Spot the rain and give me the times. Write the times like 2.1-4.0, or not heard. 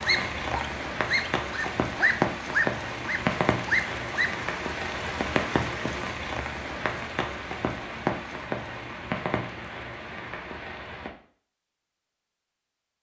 0.0-11.1.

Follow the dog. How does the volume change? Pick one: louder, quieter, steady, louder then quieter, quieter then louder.
louder.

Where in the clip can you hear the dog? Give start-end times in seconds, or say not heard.
0.0-4.3.